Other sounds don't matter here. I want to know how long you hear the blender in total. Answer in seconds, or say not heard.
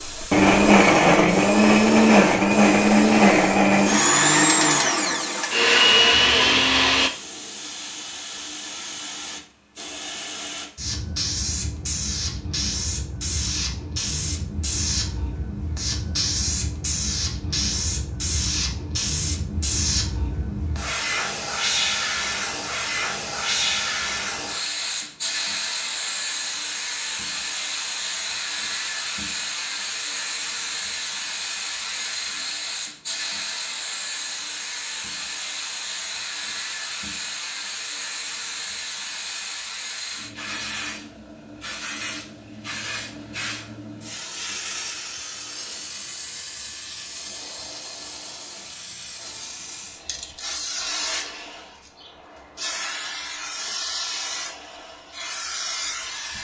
7 s.